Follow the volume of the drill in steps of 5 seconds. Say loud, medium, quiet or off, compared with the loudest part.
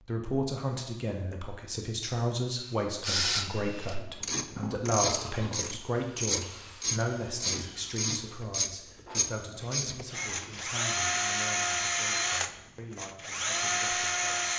quiet, quiet, loud.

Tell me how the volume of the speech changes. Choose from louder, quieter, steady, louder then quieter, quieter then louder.
quieter.